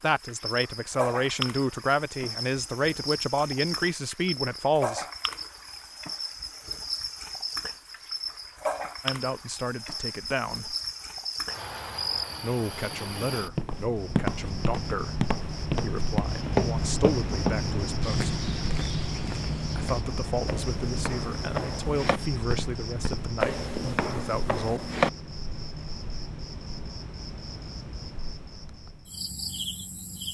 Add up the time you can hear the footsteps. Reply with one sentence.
The footsteps can be heard for 12 seconds in total.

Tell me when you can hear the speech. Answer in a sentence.
The speech can be heard from 0.0 to 5.0 s, from 9.0 to 10.8 s, from 12.4 to 18.3 s and from 19.8 to 24.9 s.